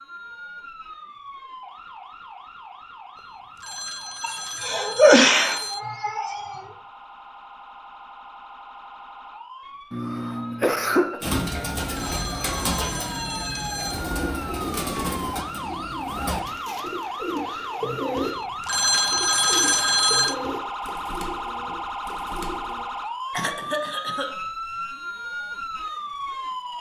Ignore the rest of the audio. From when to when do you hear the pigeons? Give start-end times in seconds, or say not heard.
11.2-22.9.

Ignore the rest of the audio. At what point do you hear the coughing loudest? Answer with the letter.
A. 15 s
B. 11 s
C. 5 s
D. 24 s
C.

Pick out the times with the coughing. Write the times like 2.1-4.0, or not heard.
4.2-6.6, 9.9-11.2, 23.3-24.3.